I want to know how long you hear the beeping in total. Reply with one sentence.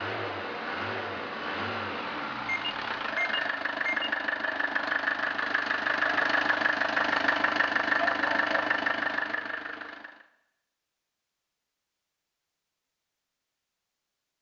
You can hear the beeping for 2 seconds altogether.